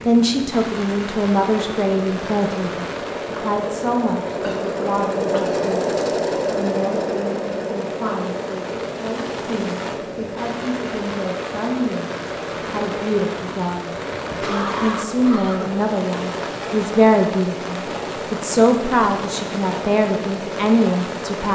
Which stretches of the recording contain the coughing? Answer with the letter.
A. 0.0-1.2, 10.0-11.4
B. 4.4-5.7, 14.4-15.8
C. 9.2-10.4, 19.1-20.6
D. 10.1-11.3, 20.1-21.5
B.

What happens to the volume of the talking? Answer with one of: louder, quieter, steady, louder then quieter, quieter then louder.
quieter then louder.